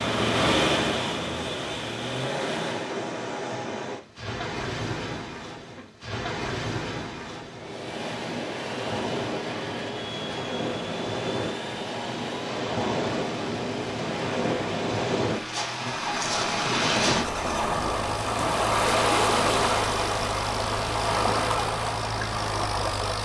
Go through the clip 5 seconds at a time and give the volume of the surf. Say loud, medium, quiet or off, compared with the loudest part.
medium, medium, medium, loud, loud.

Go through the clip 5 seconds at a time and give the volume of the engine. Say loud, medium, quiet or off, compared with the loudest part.
loud, medium, medium, medium, medium.